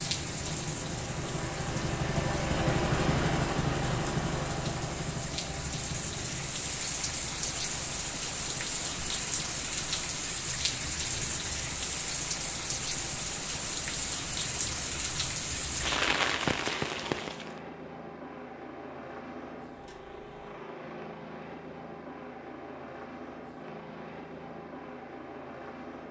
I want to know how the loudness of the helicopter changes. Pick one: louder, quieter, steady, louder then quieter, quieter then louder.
quieter.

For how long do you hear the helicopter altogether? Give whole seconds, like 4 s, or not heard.
26 s.